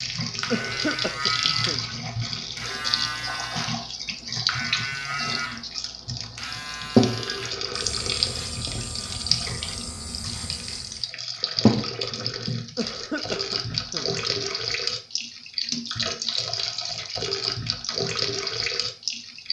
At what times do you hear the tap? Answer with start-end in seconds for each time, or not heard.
0.0-19.4.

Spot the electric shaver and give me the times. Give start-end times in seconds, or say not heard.
0.0-11.1.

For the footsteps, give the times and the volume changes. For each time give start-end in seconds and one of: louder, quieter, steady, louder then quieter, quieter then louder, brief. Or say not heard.
not heard.